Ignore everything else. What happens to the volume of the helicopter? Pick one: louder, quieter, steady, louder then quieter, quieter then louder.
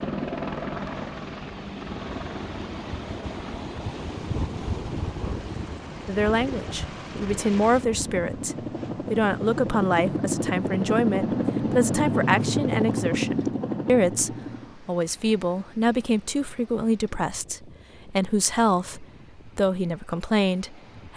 quieter then louder.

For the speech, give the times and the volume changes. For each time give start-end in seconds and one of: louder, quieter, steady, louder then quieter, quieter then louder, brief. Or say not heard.
6.0-21.1 steady.